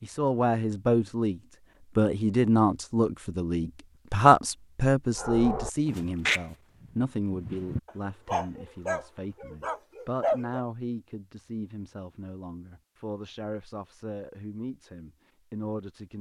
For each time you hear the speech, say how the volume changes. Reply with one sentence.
The speech can be heard from 0.0 to 16.1 s, getting quieter.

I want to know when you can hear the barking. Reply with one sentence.
You can hear the barking from 5.2 to 10.7 s.